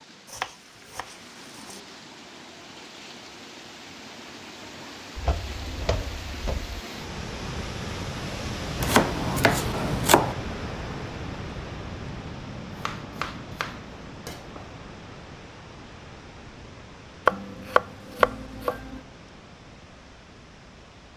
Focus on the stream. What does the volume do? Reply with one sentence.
The volume of the stream goes up, then down.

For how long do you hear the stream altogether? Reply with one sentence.
You can hear the stream for 21 seconds altogether.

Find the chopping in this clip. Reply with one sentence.
You can hear the chopping from 0.2 to 1.8 s, from 5.2 to 6.8 s, from 8.8 to 10.3 s, from 12.8 to 14.7 s and from 17.2 to 19.0 s.